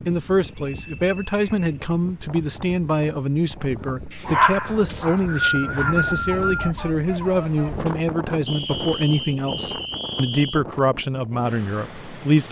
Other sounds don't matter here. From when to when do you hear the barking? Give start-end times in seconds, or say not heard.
3.6-7.8.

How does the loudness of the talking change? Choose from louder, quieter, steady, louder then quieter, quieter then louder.
steady.